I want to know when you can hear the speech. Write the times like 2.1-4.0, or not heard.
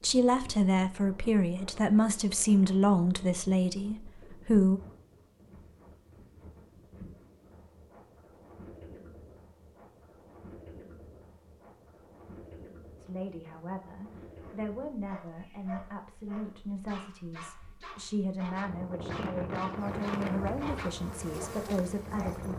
0.0-4.8, 12.9-22.5.